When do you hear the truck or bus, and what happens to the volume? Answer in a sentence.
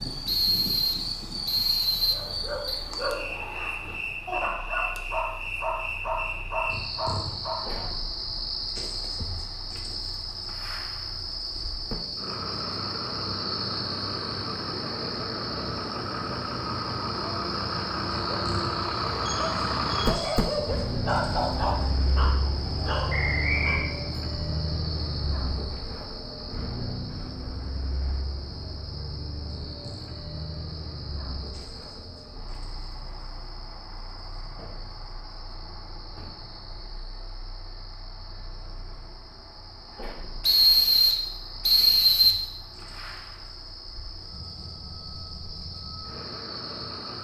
You can hear the truck or bus from 0.0 to 47.1 s, getting louder then quieter.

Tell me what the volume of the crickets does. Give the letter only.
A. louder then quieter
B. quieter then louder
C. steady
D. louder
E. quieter
E.